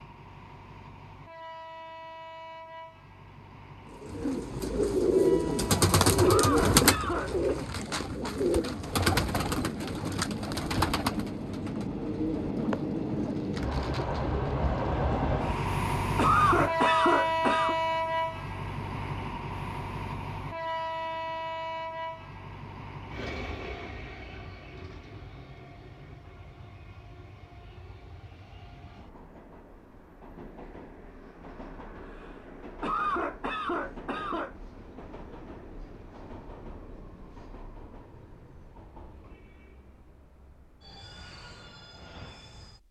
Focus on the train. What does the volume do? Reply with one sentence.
The loudness of the train goes up, then down.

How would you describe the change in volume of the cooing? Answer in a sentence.
The volume of the cooing goes down.